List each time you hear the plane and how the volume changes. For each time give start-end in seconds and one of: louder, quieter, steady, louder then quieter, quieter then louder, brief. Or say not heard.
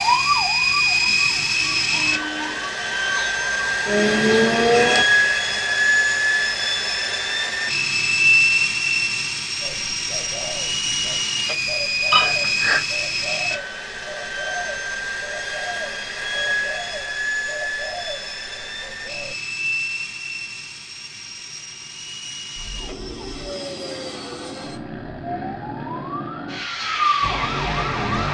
0.0-28.2 quieter.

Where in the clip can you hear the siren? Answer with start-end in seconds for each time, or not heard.
0.0-5.0, 22.6-28.2.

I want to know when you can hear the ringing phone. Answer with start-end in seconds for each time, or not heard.
12.1-12.8.